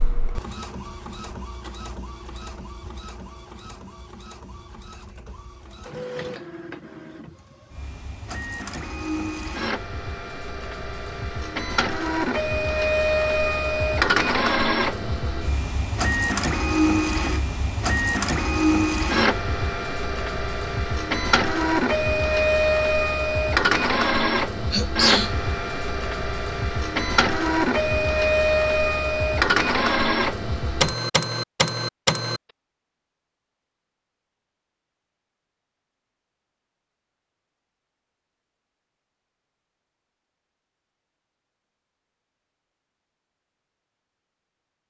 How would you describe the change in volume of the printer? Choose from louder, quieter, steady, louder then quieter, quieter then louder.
louder.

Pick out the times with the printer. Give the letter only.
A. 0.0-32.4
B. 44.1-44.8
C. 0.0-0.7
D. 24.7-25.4
A.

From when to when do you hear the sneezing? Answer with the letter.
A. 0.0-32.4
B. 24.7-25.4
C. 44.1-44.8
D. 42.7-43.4
B.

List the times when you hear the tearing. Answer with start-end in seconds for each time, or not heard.
not heard.